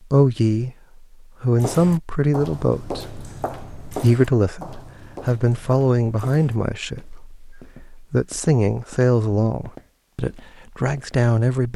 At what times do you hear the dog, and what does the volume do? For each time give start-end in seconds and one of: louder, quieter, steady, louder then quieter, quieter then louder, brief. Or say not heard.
not heard.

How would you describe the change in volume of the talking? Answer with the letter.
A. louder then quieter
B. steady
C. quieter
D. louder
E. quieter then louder
B.